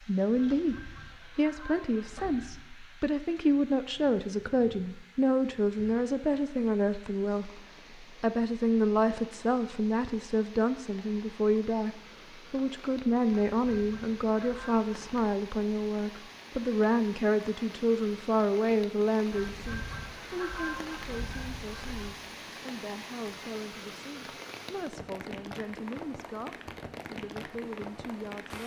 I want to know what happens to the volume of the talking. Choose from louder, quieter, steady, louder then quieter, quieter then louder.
quieter.